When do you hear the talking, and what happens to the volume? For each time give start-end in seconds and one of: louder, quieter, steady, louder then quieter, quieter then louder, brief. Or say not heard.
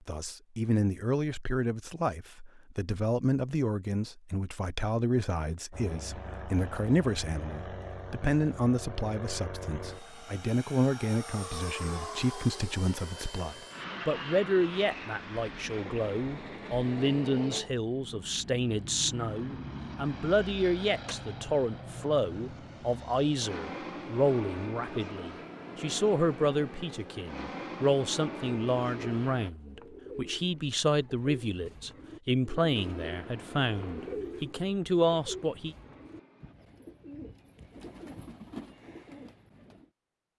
0.1-35.8 steady.